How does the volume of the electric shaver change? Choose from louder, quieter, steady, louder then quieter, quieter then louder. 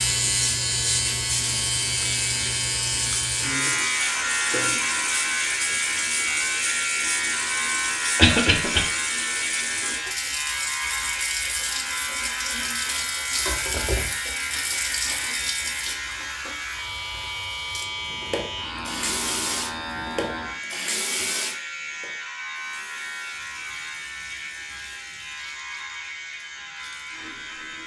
quieter.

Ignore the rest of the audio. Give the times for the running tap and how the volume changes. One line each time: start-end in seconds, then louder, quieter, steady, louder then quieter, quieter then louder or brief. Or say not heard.
0.0-27.8 quieter.